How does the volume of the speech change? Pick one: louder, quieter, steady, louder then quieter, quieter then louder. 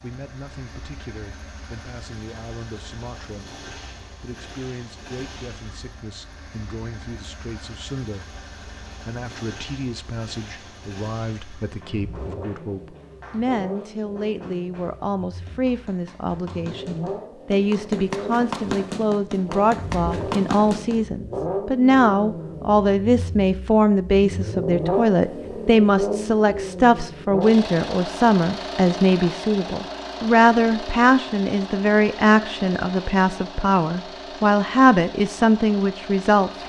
louder.